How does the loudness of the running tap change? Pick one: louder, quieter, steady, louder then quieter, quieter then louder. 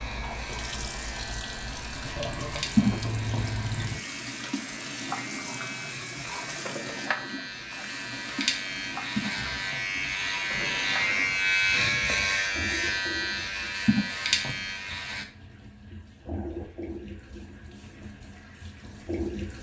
quieter.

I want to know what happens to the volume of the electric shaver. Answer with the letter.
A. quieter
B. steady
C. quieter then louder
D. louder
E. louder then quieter
D.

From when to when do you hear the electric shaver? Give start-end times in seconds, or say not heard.
0.0-15.2.